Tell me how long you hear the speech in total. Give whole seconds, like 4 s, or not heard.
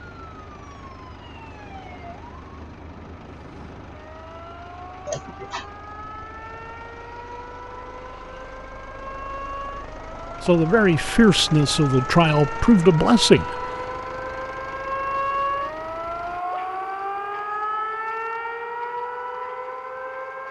3 s.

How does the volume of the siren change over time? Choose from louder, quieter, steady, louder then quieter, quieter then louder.
louder.